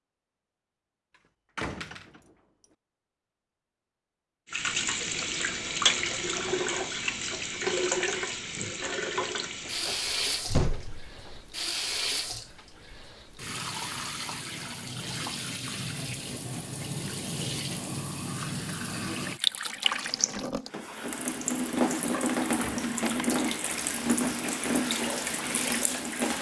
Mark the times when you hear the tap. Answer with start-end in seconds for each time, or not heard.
4.5-26.3.